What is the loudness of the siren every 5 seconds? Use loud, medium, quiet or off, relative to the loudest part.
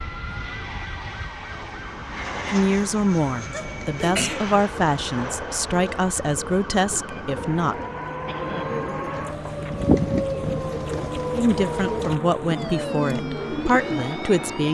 medium, loud, loud.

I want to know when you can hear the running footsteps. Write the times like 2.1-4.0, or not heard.
not heard.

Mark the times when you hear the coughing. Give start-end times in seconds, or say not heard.
3.5-4.5, 8.2-8.8.